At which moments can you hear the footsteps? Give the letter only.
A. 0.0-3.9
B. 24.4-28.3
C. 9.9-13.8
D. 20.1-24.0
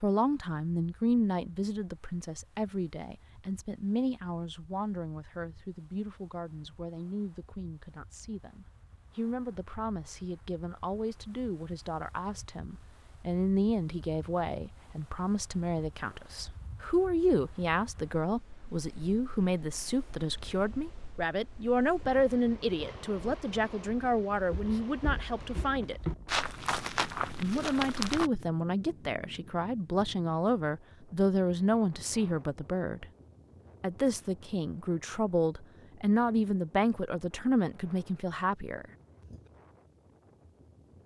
B.